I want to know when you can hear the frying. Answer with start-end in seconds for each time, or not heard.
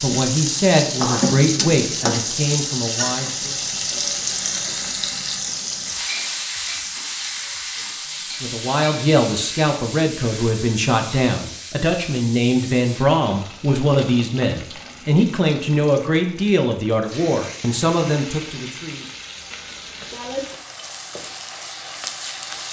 0.0-22.6.